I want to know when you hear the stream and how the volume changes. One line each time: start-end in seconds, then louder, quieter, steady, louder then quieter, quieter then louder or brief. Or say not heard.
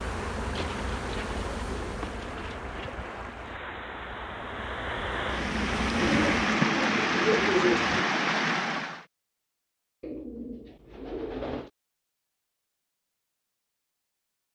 0.0-9.1 louder.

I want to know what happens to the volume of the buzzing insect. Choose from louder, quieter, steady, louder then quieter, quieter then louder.
quieter then louder.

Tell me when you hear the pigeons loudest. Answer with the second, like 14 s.
8 s.